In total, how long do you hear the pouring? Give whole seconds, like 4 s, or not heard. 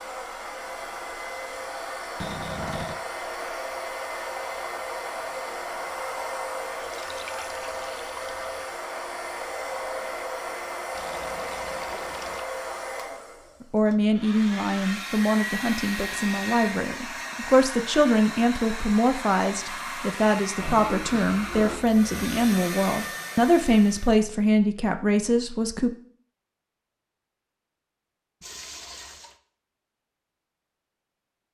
4 s.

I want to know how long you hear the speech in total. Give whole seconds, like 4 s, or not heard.
12 s.